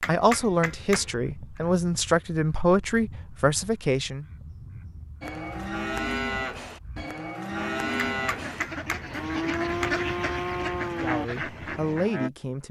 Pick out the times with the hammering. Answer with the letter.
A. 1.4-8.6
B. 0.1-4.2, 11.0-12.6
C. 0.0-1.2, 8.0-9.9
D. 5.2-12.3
C.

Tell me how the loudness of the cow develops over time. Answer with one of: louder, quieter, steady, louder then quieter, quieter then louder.
steady.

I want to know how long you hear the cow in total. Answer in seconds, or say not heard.
7 s.